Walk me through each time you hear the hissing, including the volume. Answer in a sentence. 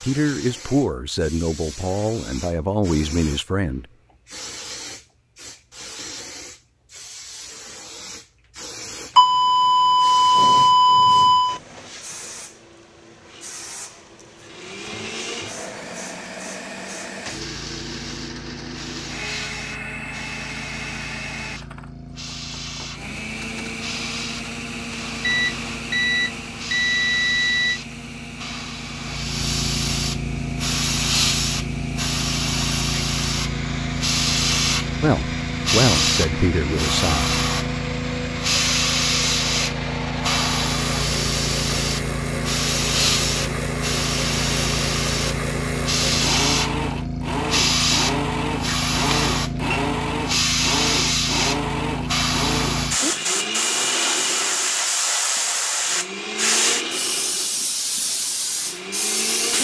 You can hear the hissing from 0.0 to 59.5 s, getting louder.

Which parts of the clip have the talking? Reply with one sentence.
You can hear the talking from 0.0 to 3.9 s and from 35.0 to 37.4 s.